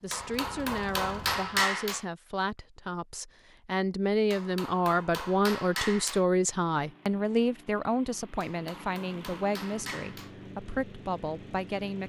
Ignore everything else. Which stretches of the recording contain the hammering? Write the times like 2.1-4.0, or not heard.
0.1-2.0, 4.3-6.2, 8.4-10.3.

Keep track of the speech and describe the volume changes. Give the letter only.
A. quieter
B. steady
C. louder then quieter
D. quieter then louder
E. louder
C.